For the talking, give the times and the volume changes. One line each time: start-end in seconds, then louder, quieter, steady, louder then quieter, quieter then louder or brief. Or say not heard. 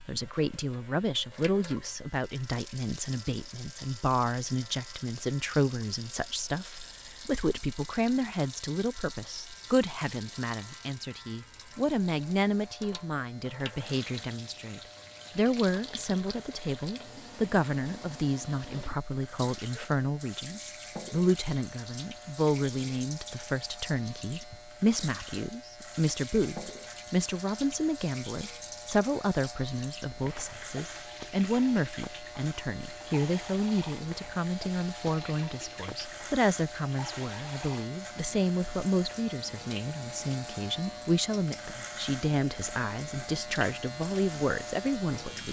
0.1-45.4 steady.